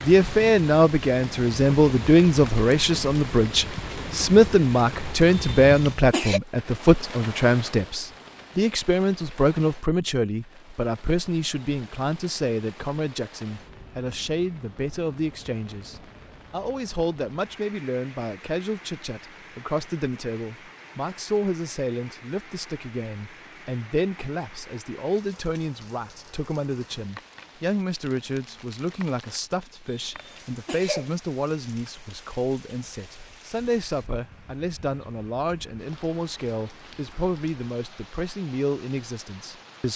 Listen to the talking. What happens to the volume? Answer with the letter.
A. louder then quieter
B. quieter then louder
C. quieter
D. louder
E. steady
C.